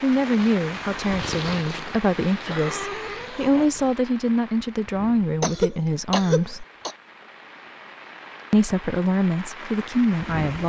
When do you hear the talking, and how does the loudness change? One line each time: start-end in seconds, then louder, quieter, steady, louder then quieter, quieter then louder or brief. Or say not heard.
0.0-6.7 steady
8.5-10.6 brief.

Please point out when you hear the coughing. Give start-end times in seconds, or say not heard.
2.4-3.7, 5.4-7.0.